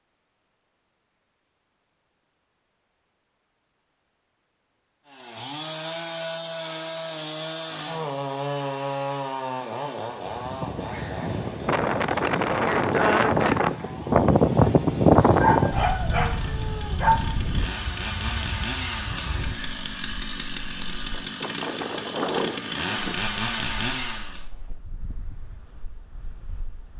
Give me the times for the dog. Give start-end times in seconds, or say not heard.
15.4-17.3.